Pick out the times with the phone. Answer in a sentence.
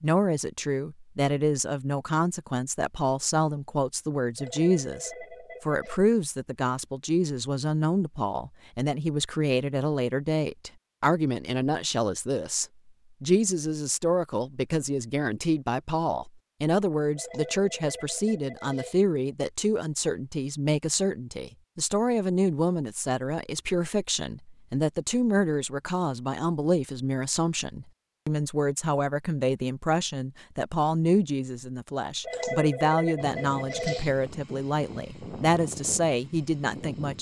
The phone can be heard from 4.3 to 6.0 s, from 17.1 to 19.1 s and from 32.2 to 34.1 s.